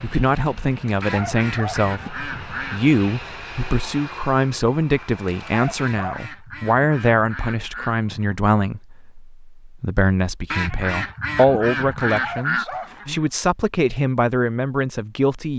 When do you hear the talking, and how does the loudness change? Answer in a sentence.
The talking can be heard from 0.0 to 15.5 s, at a steady volume.